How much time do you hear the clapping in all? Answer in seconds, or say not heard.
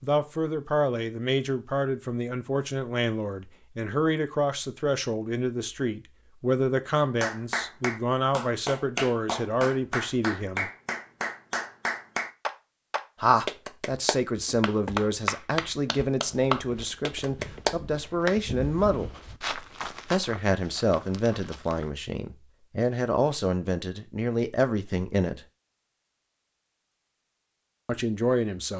11 s.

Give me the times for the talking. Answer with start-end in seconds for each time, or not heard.
0.0-10.7, 13.2-19.1, 20.1-25.4, 27.9-28.7.